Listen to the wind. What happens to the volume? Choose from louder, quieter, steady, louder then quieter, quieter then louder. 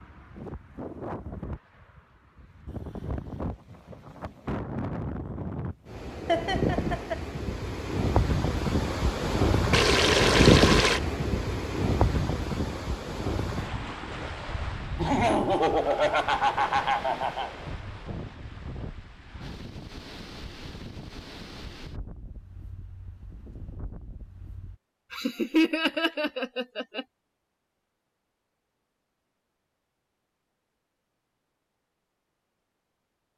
louder then quieter.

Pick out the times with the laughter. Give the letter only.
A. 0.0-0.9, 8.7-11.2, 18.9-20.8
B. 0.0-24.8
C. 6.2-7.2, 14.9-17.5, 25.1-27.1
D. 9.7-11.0
C.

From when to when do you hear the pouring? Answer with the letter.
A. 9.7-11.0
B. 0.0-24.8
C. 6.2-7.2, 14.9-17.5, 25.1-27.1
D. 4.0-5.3
A.